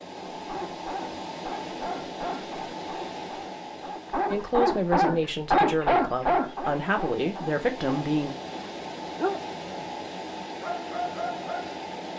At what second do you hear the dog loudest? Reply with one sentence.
The volume of the dog peaks at 6 seconds.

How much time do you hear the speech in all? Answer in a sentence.
The speech can be heard for 4 seconds in total.